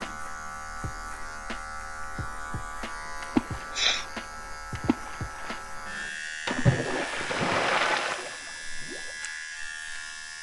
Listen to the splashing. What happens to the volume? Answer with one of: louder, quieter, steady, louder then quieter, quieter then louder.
louder.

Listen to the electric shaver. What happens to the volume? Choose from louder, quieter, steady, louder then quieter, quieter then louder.
steady.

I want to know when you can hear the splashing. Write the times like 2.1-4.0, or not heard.
3.2-8.9.